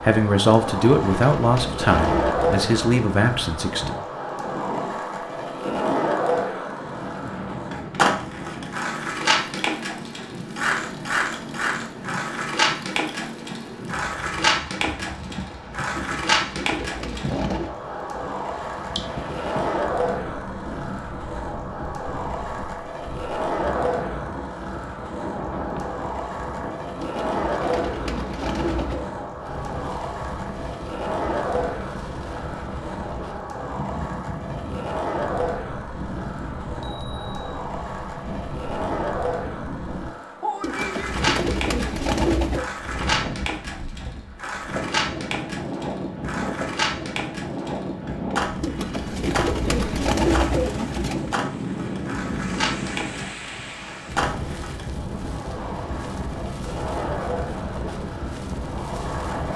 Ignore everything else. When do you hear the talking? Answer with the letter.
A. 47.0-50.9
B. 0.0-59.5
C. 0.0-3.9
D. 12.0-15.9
C.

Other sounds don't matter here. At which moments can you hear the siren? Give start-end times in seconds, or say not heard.
not heard.